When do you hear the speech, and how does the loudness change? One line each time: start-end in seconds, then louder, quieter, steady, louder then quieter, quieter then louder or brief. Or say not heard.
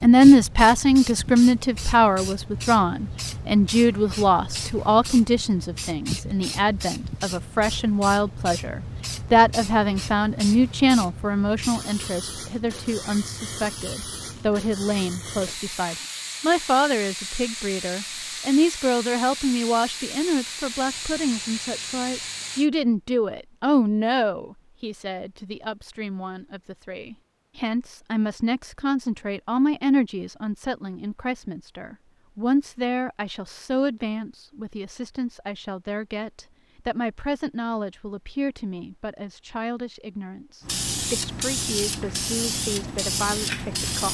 0.0-44.1 quieter.